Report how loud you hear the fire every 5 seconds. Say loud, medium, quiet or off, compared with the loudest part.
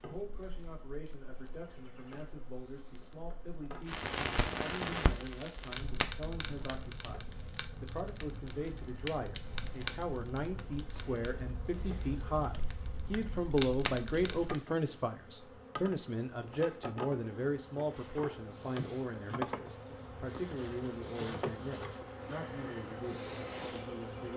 loud, loud, loud, off, off.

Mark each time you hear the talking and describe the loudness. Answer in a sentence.
You can hear the talking from 0.0 to 24.3 s, getting louder then quieter.